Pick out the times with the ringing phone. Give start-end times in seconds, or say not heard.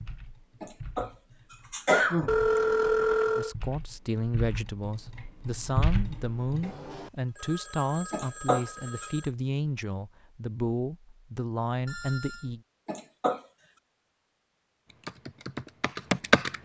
2.2-3.5, 6.6-9.3, 11.8-12.5.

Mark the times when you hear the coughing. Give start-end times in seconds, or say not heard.
0.6-1.1, 1.7-2.4, 8.1-9.1, 12.8-13.4.